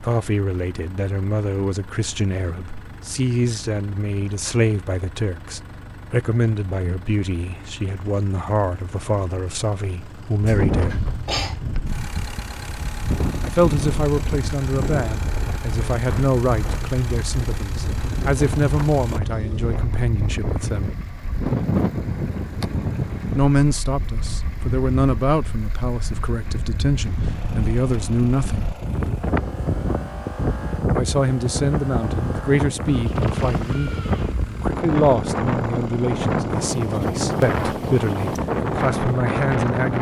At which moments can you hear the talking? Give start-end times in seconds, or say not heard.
0.0-11.1, 13.4-20.9, 23.4-28.8, 30.9-39.9.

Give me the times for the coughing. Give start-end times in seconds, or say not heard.
10.4-11.6.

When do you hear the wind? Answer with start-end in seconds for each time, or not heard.
10.4-39.9.